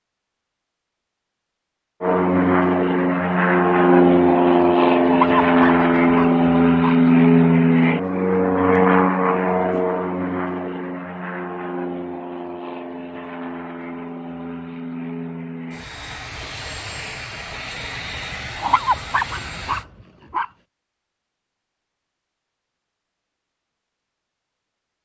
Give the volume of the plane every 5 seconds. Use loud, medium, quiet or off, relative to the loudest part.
loud, loud, quiet, quiet, off.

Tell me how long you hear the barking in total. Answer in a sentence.
The barking can be heard for 4 seconds in total.